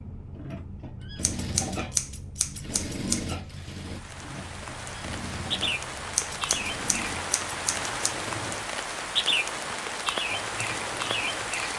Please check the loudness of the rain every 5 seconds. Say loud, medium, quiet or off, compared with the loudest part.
quiet, loud, loud.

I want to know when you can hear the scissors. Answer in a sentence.
The scissors can be heard from 1.2 to 3.4 s and from 6.2 to 8.2 s.